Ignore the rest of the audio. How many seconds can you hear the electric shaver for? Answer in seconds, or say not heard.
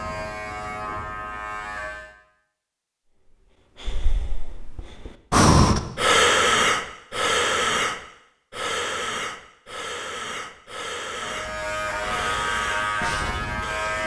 5 s.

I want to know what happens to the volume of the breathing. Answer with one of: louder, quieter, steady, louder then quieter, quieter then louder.
quieter.